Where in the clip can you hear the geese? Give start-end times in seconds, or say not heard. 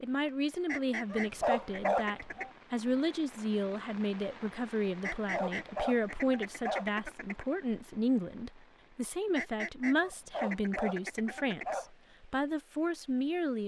0.7-2.5, 5.0-7.5, 9.3-11.8.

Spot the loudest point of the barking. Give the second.
2 s.